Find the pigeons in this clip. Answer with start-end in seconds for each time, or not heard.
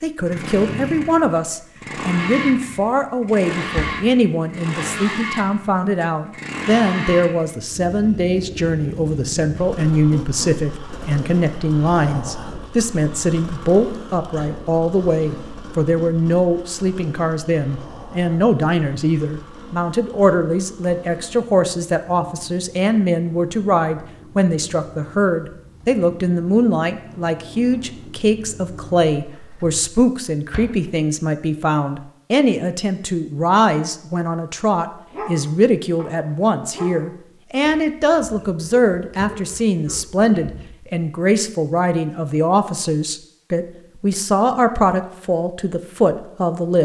not heard.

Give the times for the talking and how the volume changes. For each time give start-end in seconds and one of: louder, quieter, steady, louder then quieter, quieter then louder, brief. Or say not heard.
0.0-46.8 steady.